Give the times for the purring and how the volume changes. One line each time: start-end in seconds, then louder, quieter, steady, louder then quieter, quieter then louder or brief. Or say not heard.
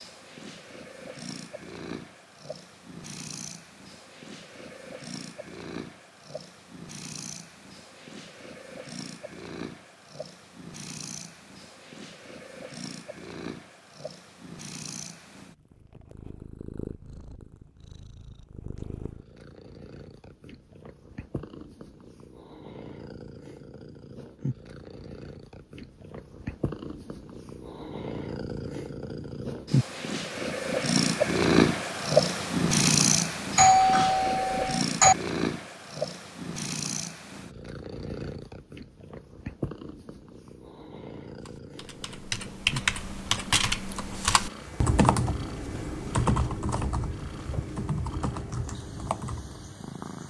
0.0-50.2 louder then quieter.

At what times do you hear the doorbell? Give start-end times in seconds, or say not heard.
33.5-35.1.